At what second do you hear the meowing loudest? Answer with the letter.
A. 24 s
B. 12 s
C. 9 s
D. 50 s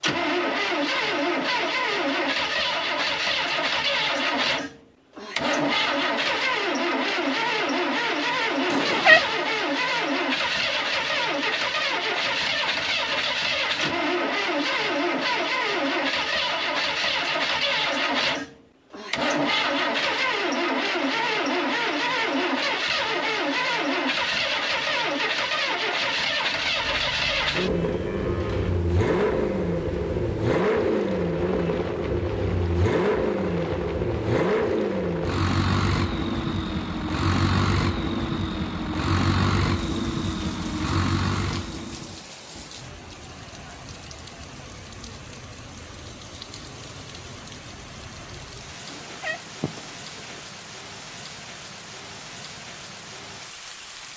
C.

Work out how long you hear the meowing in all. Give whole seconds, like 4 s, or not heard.
2 s.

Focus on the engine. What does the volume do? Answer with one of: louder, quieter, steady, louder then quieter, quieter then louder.
steady.